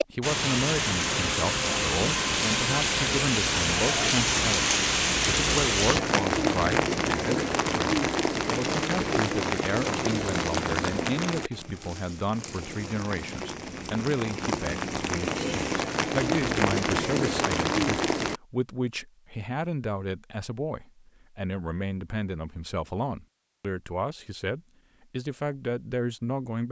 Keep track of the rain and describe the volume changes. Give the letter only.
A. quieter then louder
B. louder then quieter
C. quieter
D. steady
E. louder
A.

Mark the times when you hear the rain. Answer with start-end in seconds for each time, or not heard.
0.0-18.4.